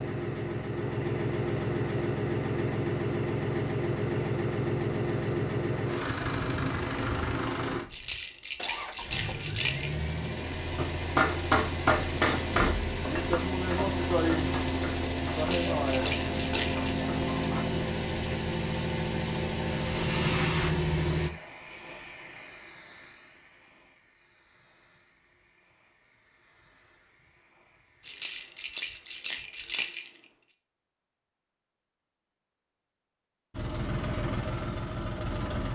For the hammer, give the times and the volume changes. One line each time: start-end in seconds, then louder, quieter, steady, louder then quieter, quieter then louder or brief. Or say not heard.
10.8-17.9 quieter.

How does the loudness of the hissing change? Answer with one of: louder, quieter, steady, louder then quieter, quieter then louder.
quieter.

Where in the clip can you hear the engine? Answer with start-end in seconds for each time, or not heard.
0.0-21.3, 33.5-35.7.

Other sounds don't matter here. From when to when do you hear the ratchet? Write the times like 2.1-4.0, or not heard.
not heard.